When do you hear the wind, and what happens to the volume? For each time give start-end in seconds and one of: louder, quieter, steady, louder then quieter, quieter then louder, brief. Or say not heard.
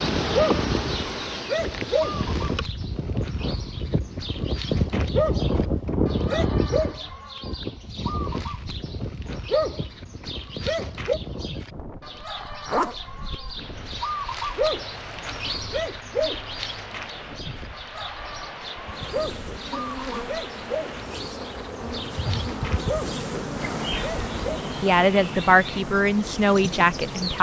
0.0-27.3 quieter.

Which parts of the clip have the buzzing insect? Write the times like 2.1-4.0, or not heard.
0.0-2.7, 18.8-27.3.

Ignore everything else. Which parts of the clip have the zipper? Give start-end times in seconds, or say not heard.
12.4-12.9.